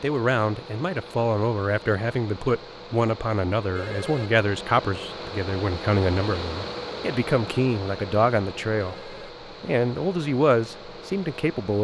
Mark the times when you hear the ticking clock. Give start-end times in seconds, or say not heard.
not heard.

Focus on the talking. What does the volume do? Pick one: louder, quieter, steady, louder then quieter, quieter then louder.
steady.